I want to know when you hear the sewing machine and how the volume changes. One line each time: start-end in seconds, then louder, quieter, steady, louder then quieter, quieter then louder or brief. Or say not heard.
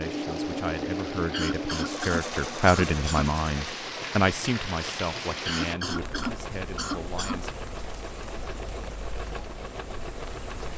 0.0-10.7 quieter.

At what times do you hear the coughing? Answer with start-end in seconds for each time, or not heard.
1.3-3.3, 5.5-7.5.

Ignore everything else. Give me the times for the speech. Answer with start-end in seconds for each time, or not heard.
0.0-7.6.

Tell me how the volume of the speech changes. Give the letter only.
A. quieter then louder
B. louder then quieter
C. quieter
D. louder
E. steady
B.